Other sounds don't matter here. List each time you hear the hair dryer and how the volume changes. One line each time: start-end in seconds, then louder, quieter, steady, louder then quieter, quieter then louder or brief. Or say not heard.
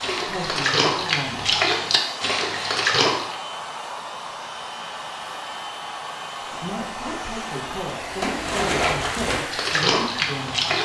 0.0-10.8 steady.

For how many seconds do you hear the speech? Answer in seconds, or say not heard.
6 s.